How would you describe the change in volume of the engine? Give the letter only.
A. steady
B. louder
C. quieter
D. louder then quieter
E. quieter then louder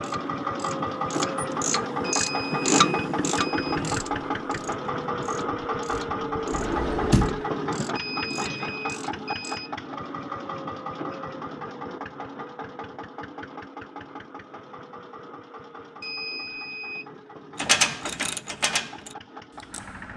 C.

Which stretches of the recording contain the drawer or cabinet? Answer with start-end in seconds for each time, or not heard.
6.5-7.4.